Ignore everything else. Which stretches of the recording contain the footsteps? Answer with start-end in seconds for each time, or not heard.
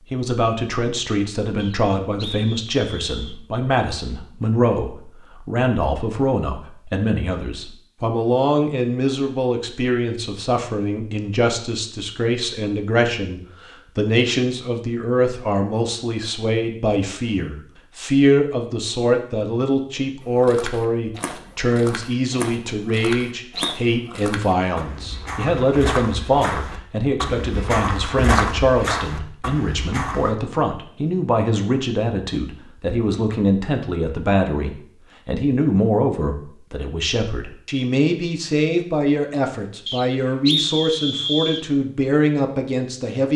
20.2-30.4.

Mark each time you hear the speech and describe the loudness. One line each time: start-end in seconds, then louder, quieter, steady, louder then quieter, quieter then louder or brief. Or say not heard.
0.1-43.3 steady.